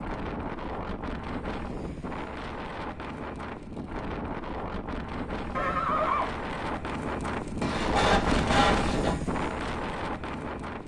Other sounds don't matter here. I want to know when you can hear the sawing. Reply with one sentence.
The sawing can be heard from 7.6 to 9.2 s.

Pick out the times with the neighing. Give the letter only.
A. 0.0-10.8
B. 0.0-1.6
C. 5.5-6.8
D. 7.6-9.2
C.